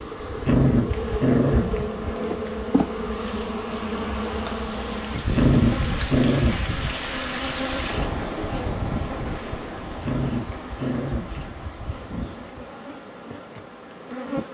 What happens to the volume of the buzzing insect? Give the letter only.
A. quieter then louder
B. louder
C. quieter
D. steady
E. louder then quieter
C.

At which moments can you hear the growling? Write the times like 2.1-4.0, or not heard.
0.4-2.0, 5.3-6.8, 10.0-12.7.